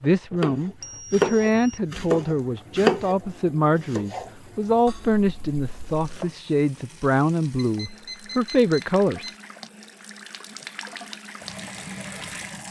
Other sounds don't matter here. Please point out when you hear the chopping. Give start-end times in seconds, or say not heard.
0.4-6.3.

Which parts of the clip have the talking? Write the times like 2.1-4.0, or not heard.
0.0-9.2.